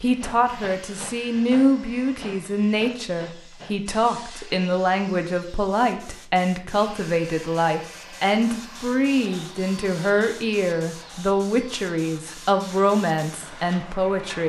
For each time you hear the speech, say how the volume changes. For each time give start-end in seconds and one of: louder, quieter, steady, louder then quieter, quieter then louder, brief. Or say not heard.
0.0-14.4 steady.